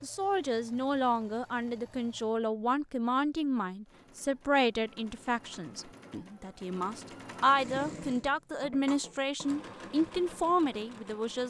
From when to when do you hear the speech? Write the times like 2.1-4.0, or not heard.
0.0-11.4.